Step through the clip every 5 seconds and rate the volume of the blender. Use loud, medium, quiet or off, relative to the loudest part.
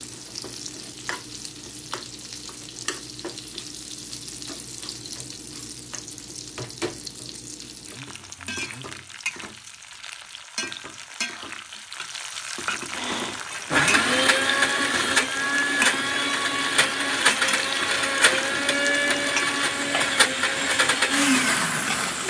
off, off, loud, loud, loud.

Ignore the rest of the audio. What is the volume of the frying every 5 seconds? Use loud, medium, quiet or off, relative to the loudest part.
medium, medium, loud, loud, loud.